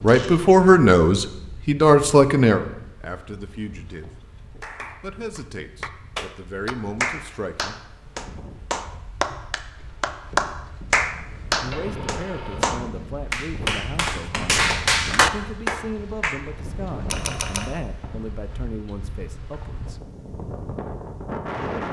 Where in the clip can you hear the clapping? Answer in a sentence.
The clapping can be heard from 4.6 to 16.4 s.